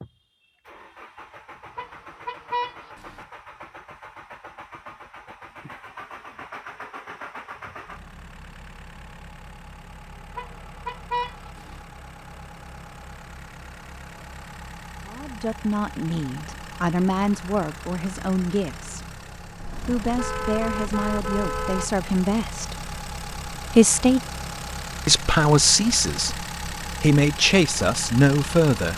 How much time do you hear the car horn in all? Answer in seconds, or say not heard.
5 s.